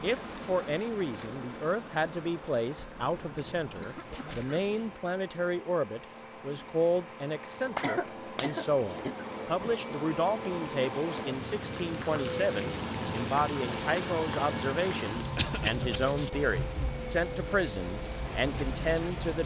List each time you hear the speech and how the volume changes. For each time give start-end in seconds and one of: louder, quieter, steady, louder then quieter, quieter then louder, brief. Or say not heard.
0.0-19.4 steady.